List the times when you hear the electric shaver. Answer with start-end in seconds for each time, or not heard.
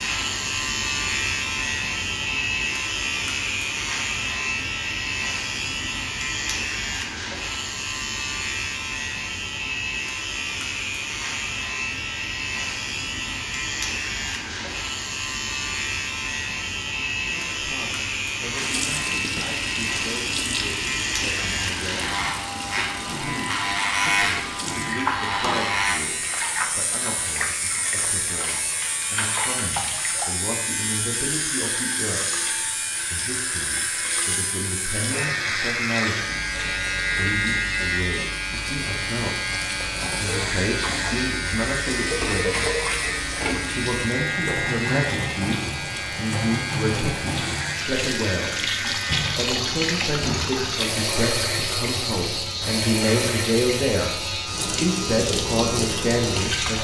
0.0-56.8.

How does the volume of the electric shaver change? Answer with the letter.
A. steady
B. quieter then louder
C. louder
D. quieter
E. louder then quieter
A.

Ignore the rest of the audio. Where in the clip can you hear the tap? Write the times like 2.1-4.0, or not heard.
18.6-56.8.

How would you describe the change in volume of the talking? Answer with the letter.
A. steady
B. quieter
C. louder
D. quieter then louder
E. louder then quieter
C.